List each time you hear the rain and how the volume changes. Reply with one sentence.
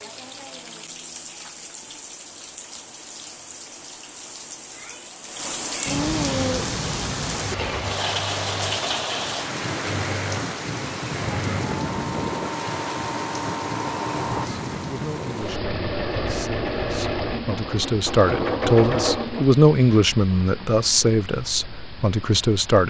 The rain can be heard from 0.0 to 22.8 s, getting louder then quieter.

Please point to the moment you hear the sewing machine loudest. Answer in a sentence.
The volume of the sewing machine peaks at 19 seconds.